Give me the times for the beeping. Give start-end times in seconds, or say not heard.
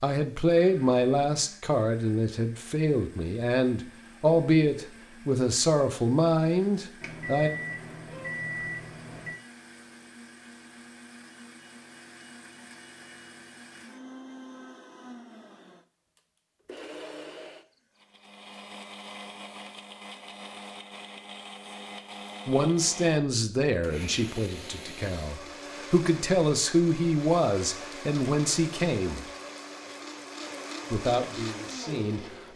7.0-9.4.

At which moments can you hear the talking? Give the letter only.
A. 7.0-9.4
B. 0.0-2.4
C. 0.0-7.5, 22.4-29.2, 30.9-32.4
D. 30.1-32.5
C.